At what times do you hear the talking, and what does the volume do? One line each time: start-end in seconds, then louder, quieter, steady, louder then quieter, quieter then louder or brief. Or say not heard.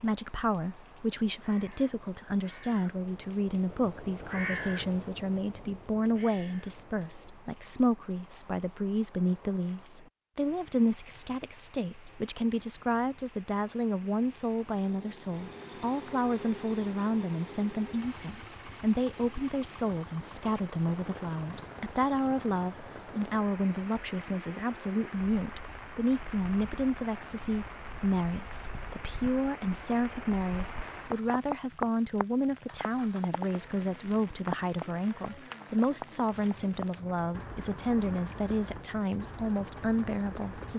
0.0-40.7 steady.